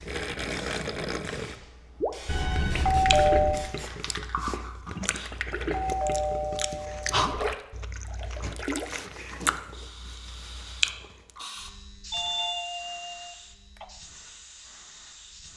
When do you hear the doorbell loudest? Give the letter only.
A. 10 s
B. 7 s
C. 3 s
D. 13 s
C.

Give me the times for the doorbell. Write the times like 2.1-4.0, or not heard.
2.2-3.6, 5.7-7.3, 12.1-13.8.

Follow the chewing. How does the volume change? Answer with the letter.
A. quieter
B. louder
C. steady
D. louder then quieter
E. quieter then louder
B.